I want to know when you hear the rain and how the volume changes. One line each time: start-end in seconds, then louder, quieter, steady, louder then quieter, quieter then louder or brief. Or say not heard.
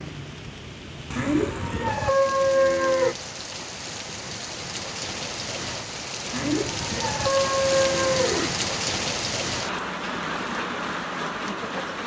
0.0-12.0 louder.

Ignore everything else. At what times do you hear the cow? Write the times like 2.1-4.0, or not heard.
1.1-3.1, 6.3-8.6.